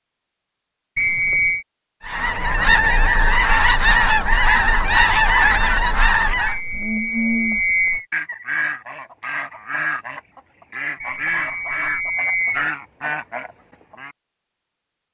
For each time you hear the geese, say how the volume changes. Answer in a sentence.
You can hear the geese from 2.0 to 14.2 s, getting quieter.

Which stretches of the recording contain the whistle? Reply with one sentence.
The whistle can be heard from 0.9 to 1.6 s, from 6.5 to 8.1 s and from 11.0 to 12.7 s.